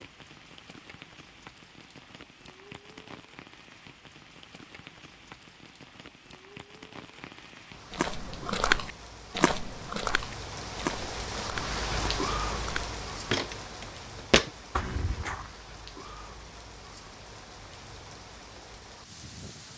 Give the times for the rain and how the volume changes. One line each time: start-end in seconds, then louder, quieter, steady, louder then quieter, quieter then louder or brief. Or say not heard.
0.0-19.7 louder then quieter.